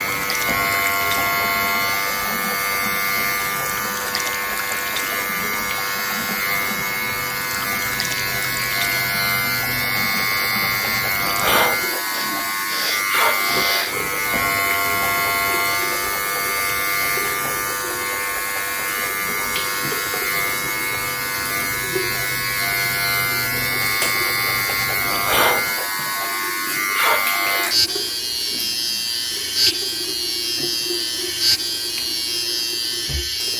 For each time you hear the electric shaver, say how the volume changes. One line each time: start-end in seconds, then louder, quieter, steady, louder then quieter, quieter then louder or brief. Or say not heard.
0.0-33.5 steady.